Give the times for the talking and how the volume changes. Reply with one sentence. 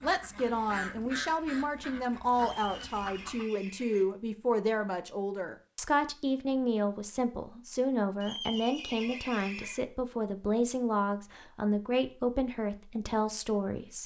You can hear the talking from 0.0 to 14.0 s, at a steady volume.